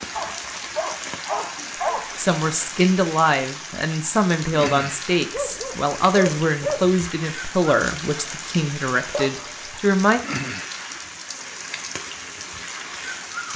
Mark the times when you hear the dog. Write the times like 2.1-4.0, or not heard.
0.1-2.1, 5.3-6.9, 9.1-9.8.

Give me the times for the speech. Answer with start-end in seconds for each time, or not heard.
2.1-10.2.